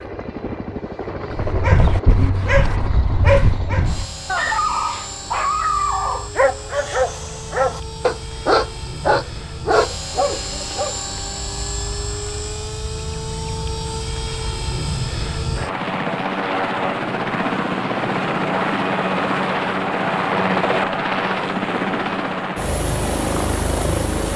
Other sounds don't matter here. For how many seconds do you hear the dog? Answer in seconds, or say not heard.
10 s.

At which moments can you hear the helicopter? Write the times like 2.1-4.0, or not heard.
0.0-24.3.